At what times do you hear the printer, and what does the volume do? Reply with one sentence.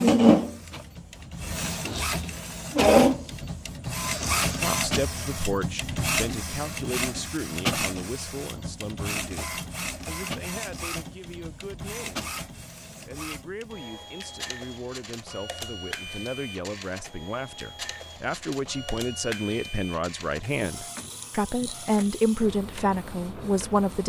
You can hear the printer from 0.0 to 24.0 s, getting quieter.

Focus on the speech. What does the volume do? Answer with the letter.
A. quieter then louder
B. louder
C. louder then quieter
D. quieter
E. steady
A.